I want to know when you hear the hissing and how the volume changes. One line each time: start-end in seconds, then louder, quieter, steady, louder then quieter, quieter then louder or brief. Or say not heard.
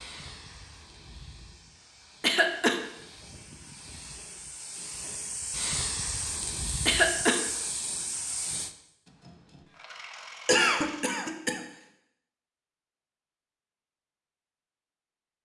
0.0-8.8 louder.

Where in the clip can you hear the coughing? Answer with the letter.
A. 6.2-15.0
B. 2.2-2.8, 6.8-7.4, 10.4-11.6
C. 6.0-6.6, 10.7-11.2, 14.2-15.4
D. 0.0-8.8
B.